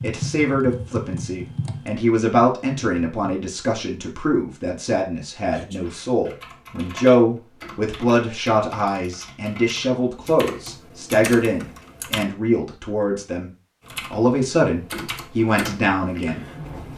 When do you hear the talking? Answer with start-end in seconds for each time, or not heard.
0.0-16.4.